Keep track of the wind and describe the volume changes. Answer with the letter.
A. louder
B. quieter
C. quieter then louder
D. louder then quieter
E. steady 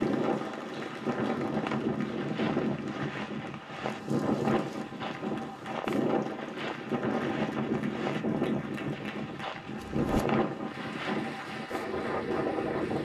E.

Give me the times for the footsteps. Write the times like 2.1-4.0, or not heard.
1.6-11.2.